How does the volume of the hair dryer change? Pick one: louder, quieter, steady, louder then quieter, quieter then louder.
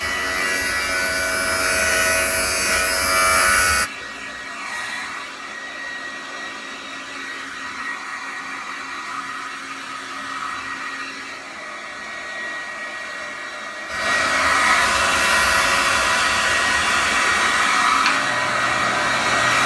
louder.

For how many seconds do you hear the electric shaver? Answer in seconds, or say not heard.
10 s.